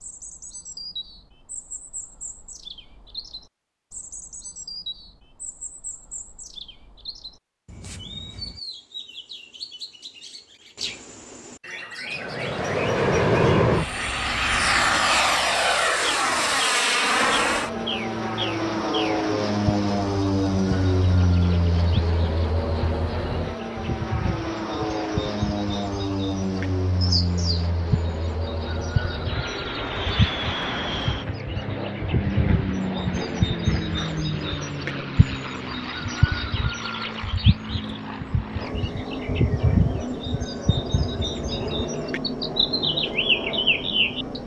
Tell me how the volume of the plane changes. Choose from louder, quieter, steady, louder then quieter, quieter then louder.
quieter.